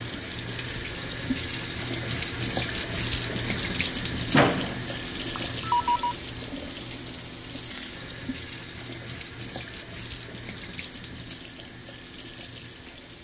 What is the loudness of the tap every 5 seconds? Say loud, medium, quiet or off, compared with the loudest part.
loud, medium, medium.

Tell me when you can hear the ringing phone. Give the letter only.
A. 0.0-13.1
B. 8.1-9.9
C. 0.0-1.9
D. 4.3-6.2
D.